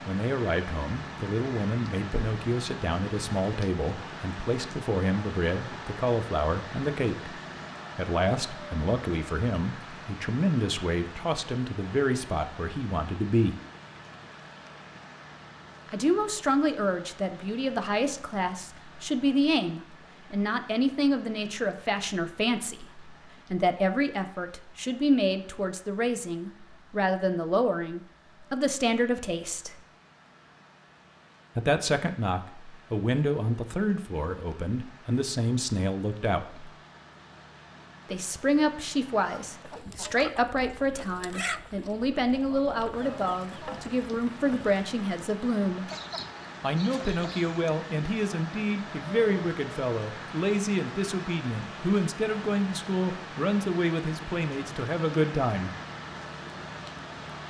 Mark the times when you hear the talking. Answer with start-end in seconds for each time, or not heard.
0.1-7.3, 8.0-13.6, 15.8-29.8, 31.6-36.7, 38.0-45.9, 46.6-55.8.